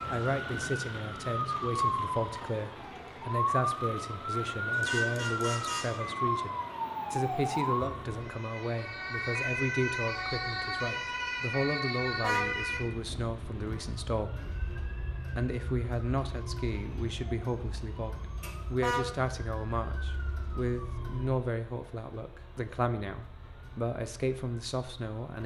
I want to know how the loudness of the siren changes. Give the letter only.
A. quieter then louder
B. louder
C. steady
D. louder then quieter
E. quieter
E.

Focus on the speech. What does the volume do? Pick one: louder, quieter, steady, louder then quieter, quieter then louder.
steady.